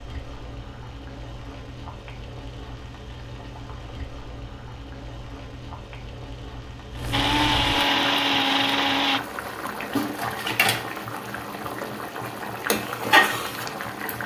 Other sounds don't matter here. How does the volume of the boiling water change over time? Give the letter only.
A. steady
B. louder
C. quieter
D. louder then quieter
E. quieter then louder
B.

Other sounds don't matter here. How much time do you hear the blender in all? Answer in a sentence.
You can hear the blender for 2 seconds altogether.